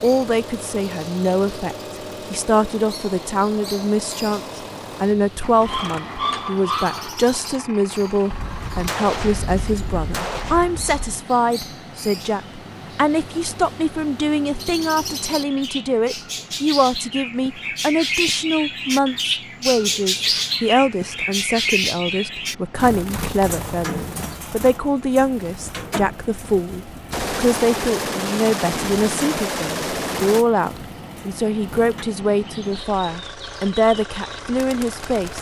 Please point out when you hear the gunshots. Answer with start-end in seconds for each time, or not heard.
8.3-11.2, 27.1-30.4.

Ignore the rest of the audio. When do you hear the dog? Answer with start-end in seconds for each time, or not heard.
5.7-7.1.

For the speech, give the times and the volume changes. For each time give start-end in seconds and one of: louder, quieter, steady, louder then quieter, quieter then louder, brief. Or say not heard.
0.0-35.3 steady.